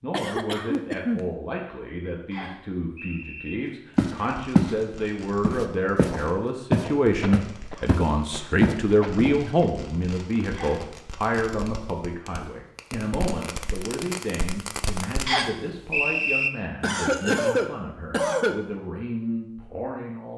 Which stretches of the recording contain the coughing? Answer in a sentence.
You can hear the coughing from 0.1 to 1.2 s, from 7.2 to 9.7 s and from 16.8 to 18.6 s.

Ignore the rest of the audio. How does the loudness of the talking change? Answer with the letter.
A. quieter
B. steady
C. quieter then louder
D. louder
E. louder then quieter
E.